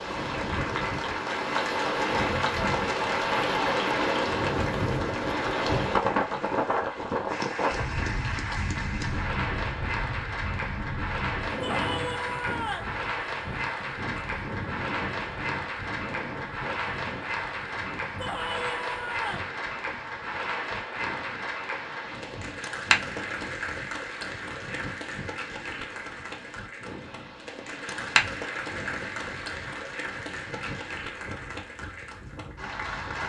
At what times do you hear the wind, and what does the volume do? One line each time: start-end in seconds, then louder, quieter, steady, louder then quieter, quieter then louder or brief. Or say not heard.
0.0-33.2 quieter.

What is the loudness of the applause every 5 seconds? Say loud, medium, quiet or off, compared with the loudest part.
loud, loud, loud, loud, loud, loud, medium.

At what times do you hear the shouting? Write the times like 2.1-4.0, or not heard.
11.6-12.9, 18.1-19.6.